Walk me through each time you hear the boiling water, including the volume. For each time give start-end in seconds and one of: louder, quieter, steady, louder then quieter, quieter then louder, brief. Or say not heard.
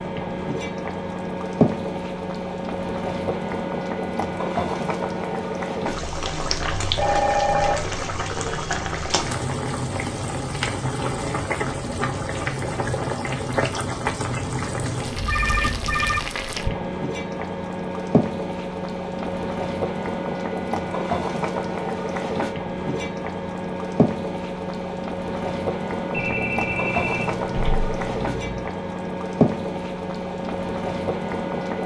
0.0-31.8 steady.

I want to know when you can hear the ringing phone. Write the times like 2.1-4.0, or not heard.
7.0-7.8, 15.2-16.2, 26.1-28.7.